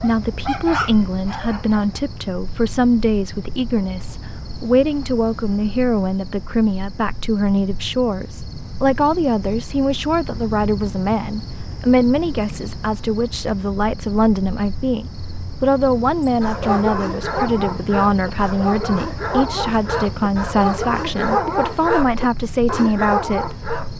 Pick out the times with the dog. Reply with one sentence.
The dog can be heard from 0.0 to 2.0 s and from 16.4 to 23.9 s.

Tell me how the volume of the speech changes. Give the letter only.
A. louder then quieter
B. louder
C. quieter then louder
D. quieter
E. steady
E.